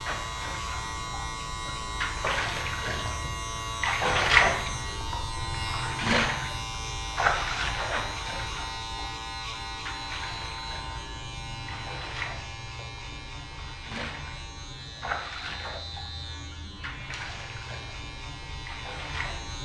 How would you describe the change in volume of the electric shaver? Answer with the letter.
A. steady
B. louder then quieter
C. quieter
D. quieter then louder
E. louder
C.